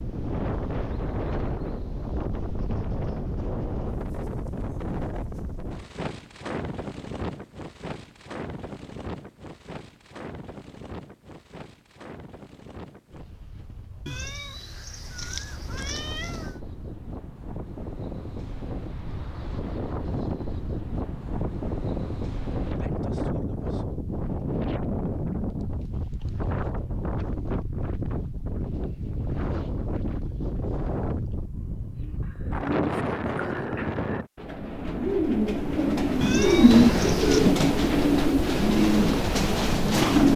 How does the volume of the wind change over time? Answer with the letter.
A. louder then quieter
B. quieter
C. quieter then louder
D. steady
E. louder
C.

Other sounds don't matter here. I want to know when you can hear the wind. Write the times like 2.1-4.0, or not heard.
0.0-34.3.